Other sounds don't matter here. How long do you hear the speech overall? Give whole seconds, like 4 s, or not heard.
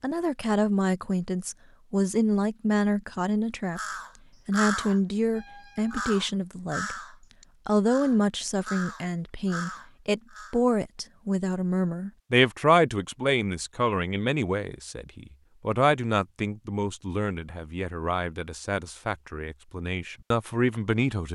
20 s.